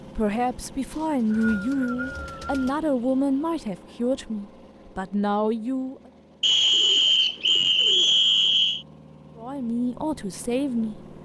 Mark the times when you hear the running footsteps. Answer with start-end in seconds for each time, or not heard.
not heard.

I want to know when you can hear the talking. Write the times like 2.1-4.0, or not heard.
0.1-6.0, 9.3-11.1.